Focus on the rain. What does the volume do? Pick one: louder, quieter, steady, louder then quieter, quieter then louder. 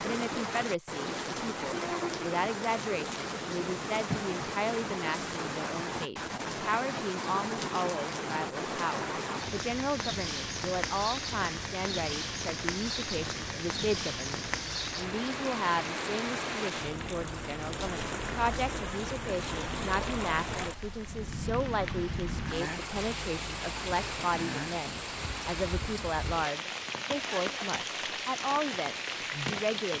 steady.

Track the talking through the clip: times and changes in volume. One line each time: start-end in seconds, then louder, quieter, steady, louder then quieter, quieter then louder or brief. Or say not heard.
0.0-29.9 steady.